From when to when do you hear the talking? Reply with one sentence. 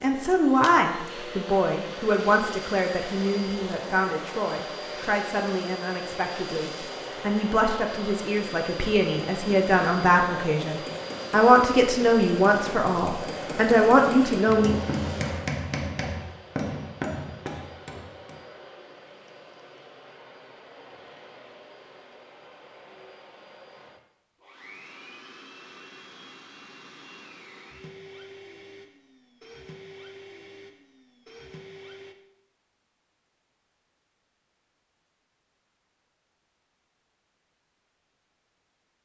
The talking can be heard from 0.0 to 14.7 s.